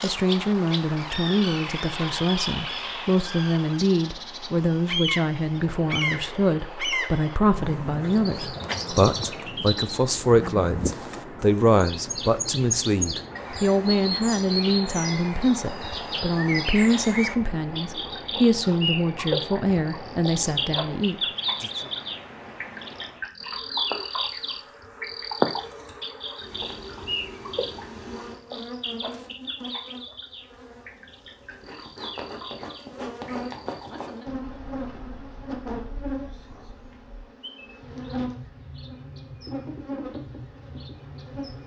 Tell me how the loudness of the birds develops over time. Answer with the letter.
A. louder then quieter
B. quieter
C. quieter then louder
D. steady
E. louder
B.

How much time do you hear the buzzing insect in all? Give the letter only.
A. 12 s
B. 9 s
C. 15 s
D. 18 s
D.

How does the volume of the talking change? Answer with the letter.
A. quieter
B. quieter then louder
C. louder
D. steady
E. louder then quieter
D.